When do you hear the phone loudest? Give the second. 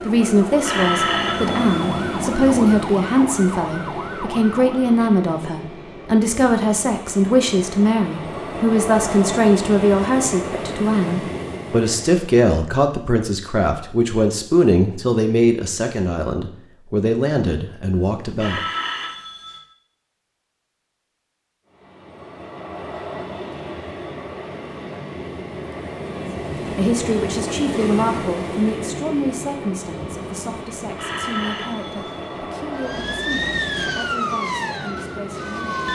1 s.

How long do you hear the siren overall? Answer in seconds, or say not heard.
8 s.